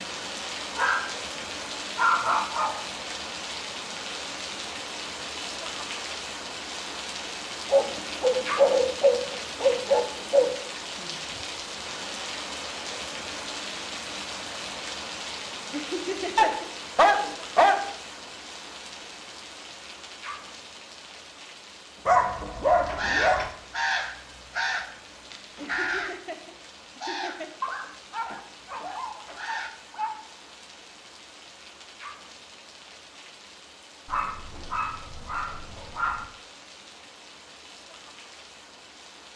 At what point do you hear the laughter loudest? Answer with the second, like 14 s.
16 s.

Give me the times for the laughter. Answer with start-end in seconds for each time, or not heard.
15.7-16.7, 25.6-27.6.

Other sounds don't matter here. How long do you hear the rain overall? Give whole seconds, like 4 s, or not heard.
39 s.